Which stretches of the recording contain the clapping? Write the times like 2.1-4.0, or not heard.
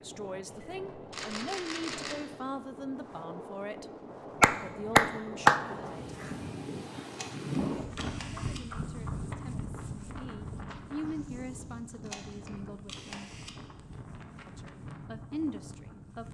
4.4-5.6.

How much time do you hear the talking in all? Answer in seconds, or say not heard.
12 s.